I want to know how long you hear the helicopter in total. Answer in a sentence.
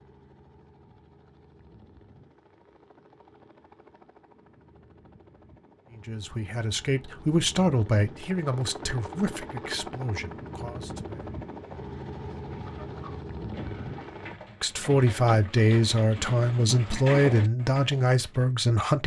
The helicopter can be heard for 14 seconds in total.